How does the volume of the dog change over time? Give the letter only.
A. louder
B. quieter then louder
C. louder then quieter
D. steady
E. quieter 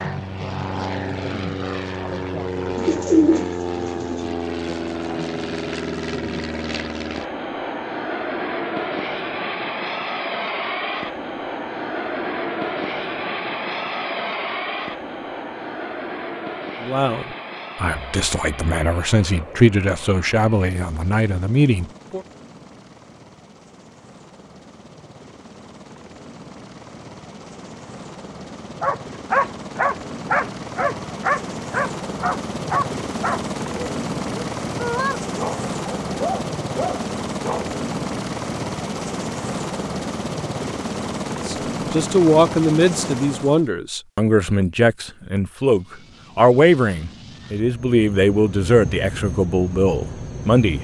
E.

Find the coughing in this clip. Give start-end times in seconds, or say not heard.
not heard.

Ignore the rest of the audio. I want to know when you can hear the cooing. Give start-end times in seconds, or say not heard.
2.8-4.2.